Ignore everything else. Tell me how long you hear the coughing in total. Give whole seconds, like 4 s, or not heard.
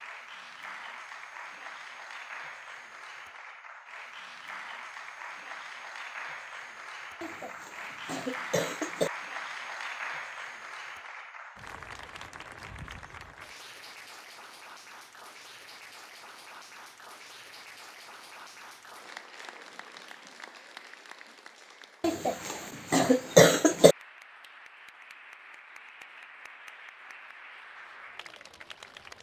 4 s.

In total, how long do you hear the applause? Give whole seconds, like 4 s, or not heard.
29 s.